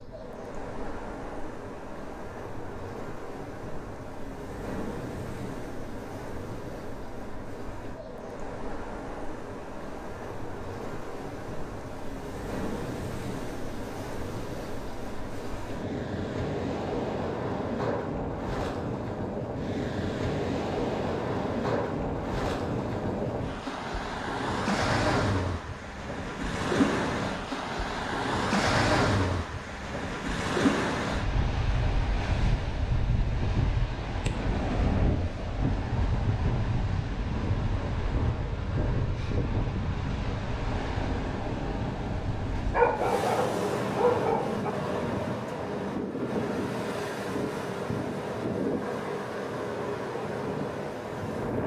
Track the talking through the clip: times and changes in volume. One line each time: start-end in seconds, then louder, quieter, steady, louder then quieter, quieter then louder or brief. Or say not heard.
not heard.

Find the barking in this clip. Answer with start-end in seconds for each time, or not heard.
42.7-44.7.